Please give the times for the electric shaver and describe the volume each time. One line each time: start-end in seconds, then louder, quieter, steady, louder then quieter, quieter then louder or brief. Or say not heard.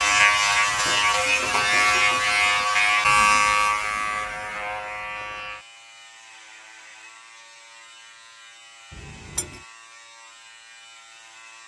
0.0-11.6 quieter.